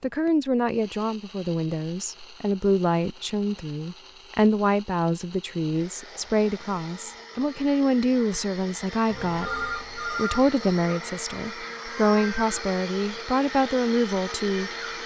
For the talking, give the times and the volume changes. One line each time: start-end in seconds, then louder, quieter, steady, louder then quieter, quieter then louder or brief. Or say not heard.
0.0-14.7 steady.